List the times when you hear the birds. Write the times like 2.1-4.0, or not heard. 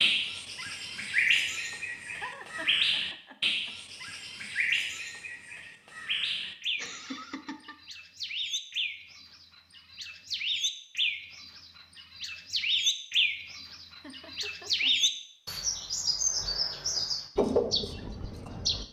0.0-18.8.